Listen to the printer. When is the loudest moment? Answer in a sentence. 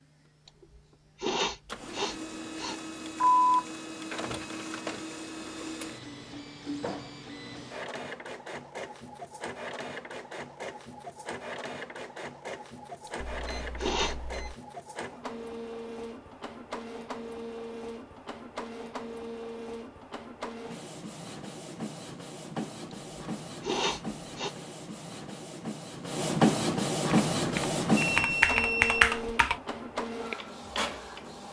The volume of the printer peaks at 27 seconds.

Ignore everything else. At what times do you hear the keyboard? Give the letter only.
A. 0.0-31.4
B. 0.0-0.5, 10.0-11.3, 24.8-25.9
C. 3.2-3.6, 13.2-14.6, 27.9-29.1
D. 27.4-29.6
D.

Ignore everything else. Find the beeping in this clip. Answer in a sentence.
The beeping can be heard from 3.2 to 3.6 s, from 13.2 to 14.6 s and from 27.9 to 29.1 s.